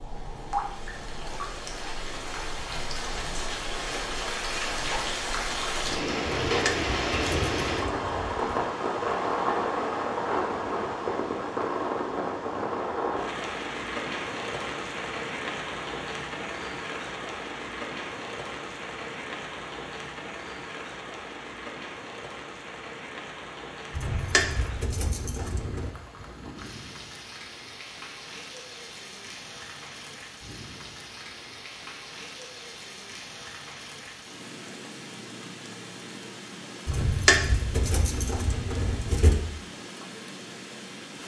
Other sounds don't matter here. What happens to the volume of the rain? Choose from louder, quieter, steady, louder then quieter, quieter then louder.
quieter.